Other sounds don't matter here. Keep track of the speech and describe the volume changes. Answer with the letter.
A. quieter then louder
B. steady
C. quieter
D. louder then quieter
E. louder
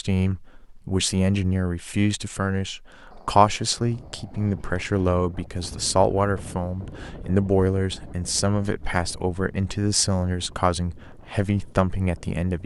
B.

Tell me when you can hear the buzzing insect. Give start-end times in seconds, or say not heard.
not heard.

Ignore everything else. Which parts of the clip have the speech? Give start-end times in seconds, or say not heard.
0.0-12.6.